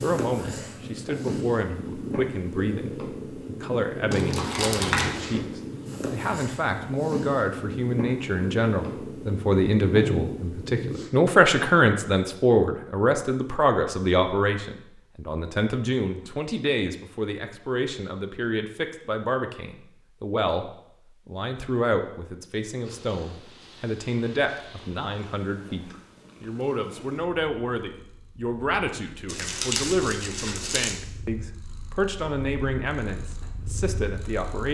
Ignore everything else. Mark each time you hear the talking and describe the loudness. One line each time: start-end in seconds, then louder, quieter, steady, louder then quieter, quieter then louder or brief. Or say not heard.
0.0-34.6 louder then quieter.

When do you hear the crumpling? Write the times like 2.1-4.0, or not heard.
4.1-5.2, 29.2-30.9.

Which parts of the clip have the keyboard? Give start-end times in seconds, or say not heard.
not heard.